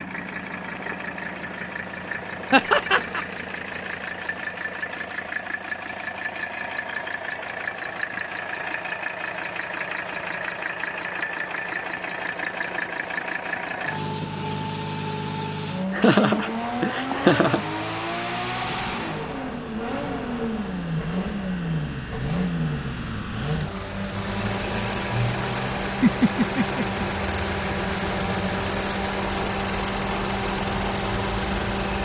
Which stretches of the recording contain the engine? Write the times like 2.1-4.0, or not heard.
0.0-31.9.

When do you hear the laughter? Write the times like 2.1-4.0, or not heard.
2.5-3.2, 15.9-17.6, 26.0-27.1.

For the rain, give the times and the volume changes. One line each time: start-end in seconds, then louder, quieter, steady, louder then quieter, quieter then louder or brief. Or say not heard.
not heard.